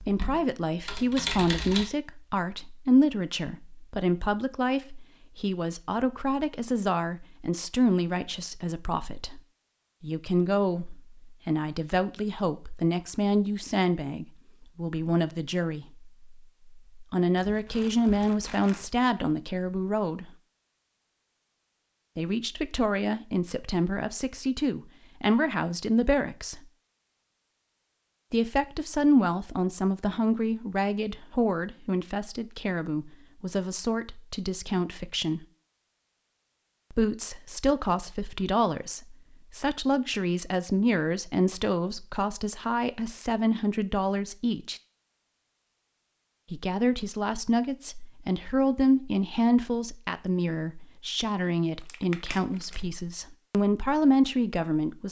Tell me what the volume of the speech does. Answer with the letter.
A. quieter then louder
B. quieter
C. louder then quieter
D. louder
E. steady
E.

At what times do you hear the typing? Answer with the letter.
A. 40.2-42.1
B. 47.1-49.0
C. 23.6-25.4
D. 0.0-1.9
D.